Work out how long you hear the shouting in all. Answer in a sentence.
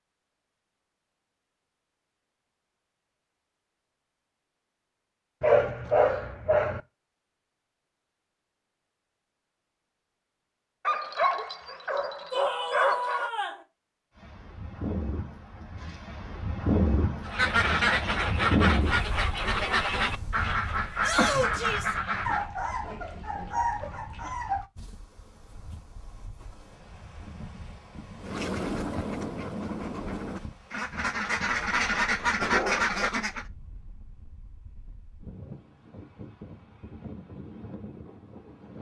The shouting can be heard for 2 seconds in total.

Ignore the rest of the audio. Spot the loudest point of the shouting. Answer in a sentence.
The loudest moment of the shouting is at 21 seconds.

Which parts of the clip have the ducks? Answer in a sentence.
You can hear the ducks from 17.2 to 22.5 s and from 28.2 to 33.5 s.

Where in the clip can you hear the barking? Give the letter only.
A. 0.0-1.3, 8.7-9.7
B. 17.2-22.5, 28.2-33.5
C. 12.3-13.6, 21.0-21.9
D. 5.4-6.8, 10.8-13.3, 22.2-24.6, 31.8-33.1
D.